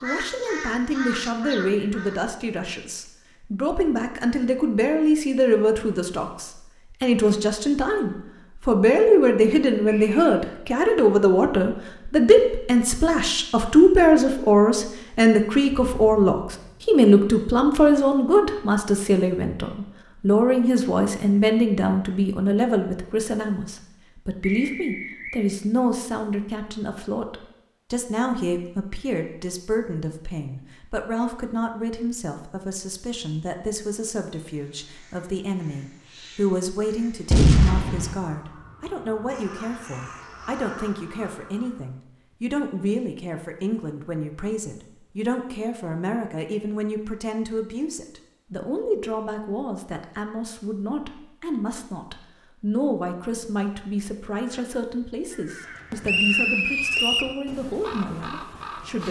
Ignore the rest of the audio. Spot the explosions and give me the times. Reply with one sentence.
The explosions can be heard from 15.7 to 16.9 s and from 37.3 to 38.1 s.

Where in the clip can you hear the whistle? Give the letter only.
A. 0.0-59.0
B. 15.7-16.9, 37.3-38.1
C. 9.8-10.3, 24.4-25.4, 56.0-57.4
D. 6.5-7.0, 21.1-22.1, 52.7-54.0
C.